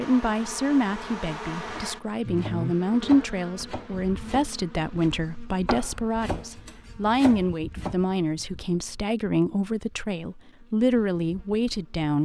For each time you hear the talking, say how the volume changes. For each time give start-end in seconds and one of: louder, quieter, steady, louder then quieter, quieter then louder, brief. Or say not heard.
0.0-12.2 steady.